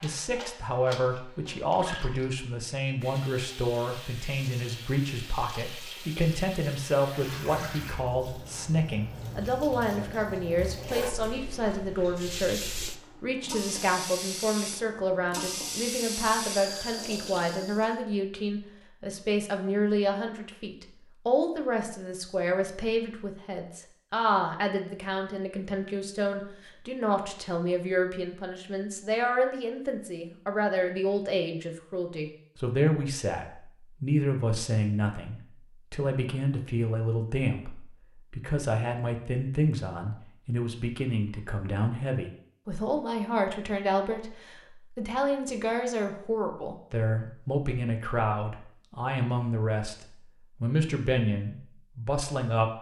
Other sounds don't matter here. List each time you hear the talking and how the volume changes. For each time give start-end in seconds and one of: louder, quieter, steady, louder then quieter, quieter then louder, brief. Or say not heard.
0.0-52.7 steady.